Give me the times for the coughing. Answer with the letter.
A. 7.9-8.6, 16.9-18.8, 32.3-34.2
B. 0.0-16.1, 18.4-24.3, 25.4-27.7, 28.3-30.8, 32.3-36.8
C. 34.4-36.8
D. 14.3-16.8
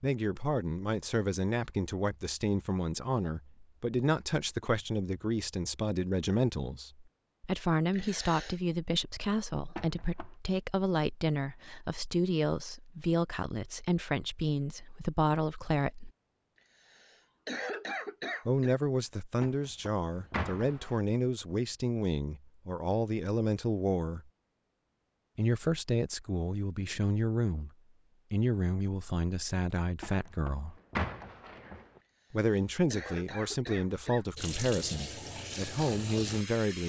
A.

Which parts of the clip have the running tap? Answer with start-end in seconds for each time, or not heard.
34.4-36.8.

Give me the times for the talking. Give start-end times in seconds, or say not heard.
0.0-16.1, 18.4-24.3, 25.4-27.7, 28.3-30.8, 32.3-36.8.